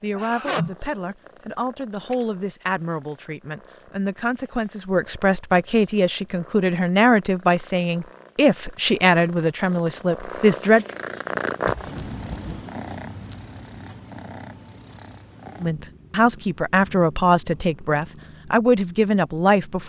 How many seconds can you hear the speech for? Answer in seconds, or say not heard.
15 s.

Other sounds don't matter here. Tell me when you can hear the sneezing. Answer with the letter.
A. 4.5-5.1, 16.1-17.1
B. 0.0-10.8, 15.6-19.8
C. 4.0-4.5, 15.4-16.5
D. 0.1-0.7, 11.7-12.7
D.